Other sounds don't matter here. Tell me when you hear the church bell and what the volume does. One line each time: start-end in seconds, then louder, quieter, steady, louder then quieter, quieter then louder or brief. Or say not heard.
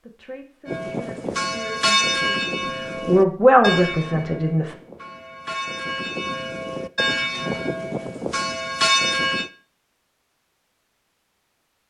0.7-9.5 quieter then louder.